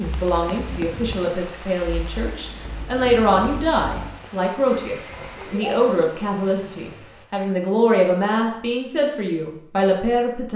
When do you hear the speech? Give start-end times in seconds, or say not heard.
0.0-10.5.